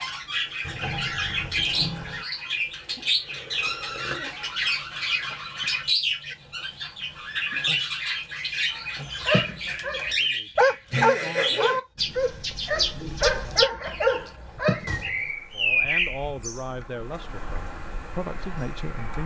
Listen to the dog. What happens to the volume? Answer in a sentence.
The loudness of the dog goes up, then down.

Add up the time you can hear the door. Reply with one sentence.
You can hear the door for 2 seconds altogether.